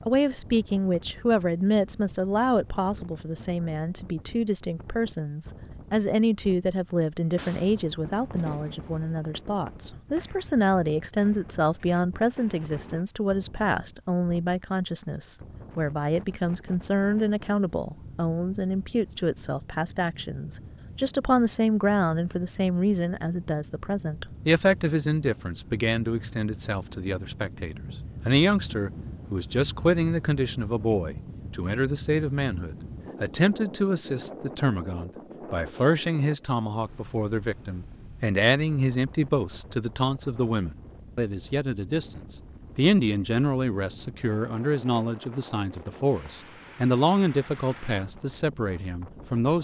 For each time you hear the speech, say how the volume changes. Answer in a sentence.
You can hear the speech from 0.1 to 49.5 s, at a steady volume.